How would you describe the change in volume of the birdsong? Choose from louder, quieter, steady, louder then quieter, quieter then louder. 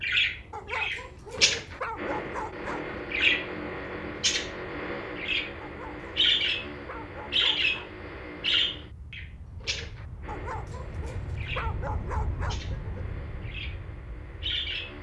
quieter.